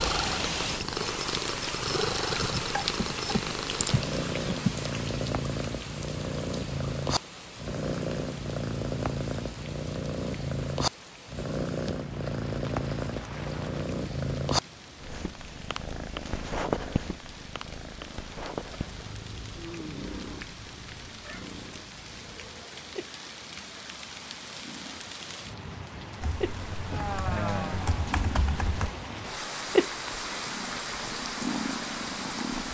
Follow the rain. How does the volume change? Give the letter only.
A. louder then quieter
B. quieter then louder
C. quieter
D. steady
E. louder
B.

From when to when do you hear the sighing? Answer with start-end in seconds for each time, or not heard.
26.9-28.1.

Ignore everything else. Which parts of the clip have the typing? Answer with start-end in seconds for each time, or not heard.
2.3-4.8, 26.2-28.9.